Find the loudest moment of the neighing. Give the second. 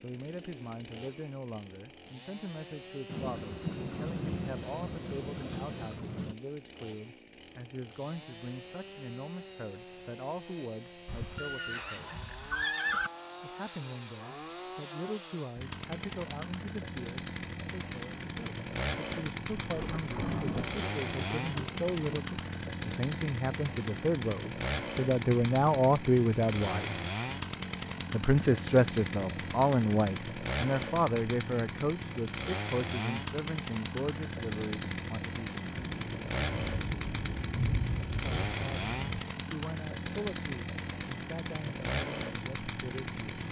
13 s.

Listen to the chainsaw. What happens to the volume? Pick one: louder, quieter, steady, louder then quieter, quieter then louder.
louder.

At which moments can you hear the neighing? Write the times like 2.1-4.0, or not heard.
11.1-13.1.